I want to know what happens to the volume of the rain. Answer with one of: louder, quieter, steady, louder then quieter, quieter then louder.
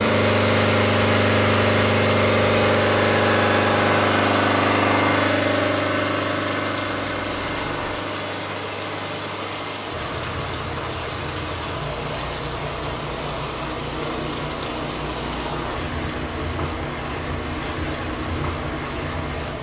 steady.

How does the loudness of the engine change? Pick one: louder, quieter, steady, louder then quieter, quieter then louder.
quieter.